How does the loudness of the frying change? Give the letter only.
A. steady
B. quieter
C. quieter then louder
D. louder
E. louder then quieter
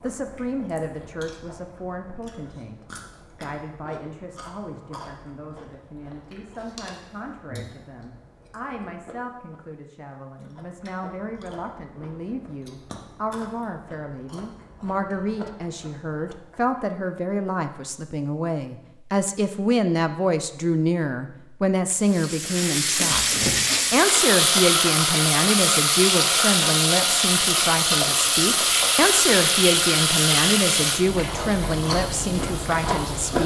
B.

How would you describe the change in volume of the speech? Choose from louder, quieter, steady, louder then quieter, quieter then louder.
louder.